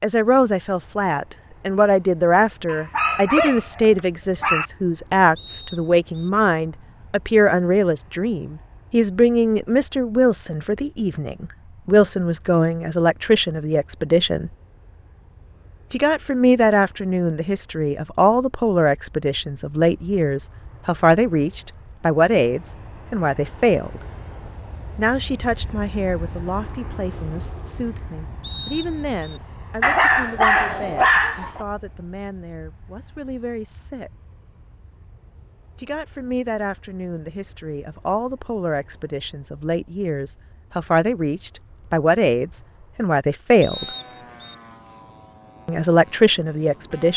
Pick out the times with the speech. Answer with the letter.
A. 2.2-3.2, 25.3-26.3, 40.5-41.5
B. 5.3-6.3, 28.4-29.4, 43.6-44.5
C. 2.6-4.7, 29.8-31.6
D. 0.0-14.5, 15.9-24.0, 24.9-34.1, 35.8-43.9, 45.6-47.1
D.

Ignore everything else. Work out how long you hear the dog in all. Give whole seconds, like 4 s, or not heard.
4 s.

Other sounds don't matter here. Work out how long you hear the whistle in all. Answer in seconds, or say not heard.
3 s.